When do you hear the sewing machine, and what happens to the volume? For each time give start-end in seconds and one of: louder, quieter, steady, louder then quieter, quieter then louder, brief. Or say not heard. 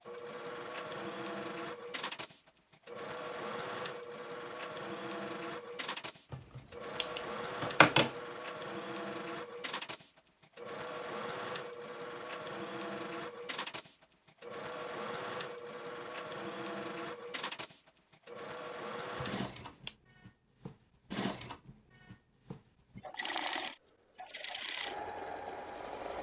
0.0-26.1 steady.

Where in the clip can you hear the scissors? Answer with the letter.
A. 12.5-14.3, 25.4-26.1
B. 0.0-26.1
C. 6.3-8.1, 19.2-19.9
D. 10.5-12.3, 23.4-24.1
C.